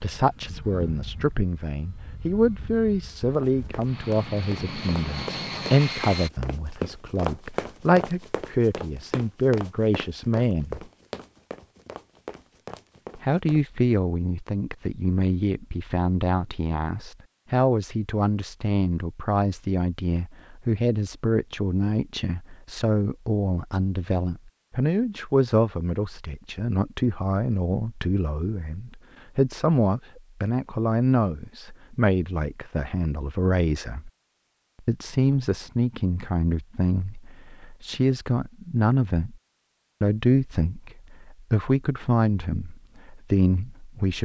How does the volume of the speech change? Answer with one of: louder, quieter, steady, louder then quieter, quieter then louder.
steady.